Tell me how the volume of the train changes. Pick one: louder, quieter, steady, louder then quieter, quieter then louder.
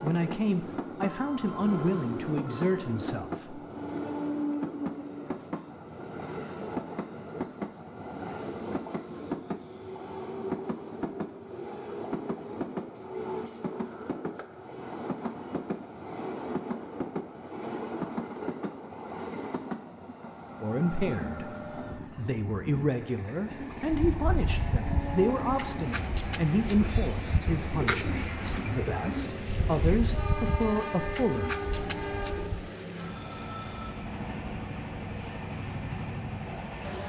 steady.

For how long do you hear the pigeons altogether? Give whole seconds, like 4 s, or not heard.
9 s.